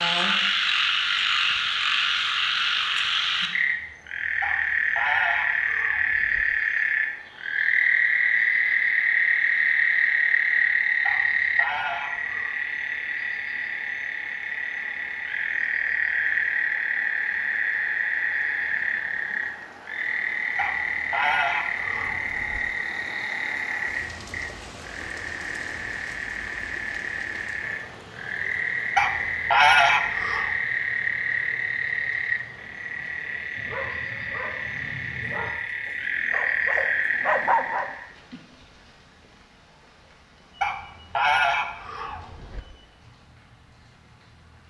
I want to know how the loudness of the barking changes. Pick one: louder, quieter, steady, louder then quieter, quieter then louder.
louder.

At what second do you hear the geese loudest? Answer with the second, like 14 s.
30 s.